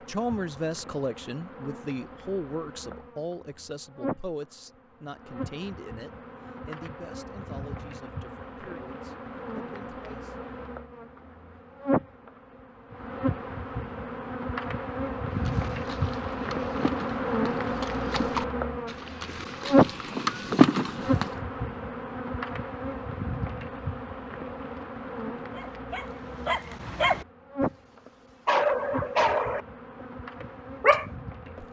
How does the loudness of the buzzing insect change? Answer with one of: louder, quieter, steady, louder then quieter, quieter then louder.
louder then quieter.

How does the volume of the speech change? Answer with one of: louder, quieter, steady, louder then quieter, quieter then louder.
quieter.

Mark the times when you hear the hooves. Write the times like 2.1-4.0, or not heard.
15.4-21.3.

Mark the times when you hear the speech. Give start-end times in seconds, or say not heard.
0.1-10.3.